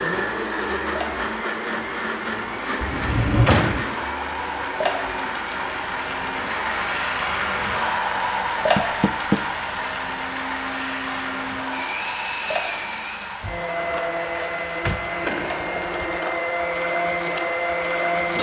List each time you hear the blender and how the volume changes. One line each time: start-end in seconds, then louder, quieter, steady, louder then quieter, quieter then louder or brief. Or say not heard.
0.0-18.3 quieter then louder.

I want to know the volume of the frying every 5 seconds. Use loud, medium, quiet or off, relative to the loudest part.
medium, loud, medium, medium.